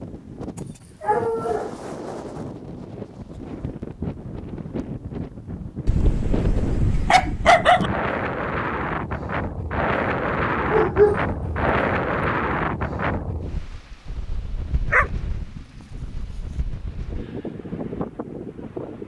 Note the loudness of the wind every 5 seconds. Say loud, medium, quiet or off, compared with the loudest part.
medium, loud, loud, medium.